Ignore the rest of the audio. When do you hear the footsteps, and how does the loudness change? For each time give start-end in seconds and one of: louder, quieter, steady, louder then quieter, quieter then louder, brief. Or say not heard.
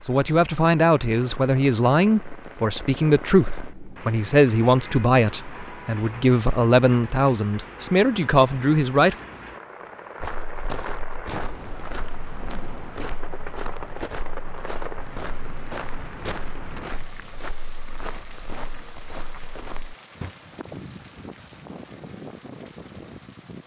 10.2-20.3 steady.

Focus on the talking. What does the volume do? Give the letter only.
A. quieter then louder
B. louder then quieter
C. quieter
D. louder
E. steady
E.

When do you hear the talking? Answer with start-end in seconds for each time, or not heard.
0.1-9.2.